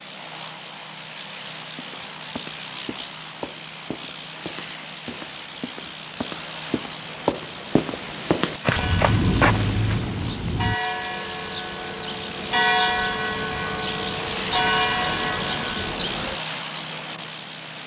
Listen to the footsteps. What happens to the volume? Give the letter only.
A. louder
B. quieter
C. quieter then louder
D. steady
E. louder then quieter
A.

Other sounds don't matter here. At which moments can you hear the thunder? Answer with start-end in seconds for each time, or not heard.
8.8-10.8.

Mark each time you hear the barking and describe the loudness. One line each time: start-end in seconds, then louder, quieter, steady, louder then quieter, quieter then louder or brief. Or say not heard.
not heard.